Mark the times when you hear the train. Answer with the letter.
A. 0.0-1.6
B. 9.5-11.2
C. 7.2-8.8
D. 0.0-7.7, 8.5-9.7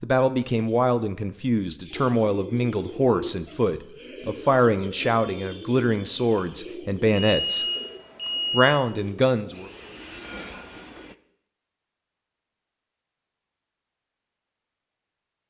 B.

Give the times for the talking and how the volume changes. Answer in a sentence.
The talking can be heard from 0.0 to 7.7 s, at a steady volume; and briefly from 8.5 to 9.7 s.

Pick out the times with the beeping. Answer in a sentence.
The beeping can be heard from 7.2 to 8.8 s.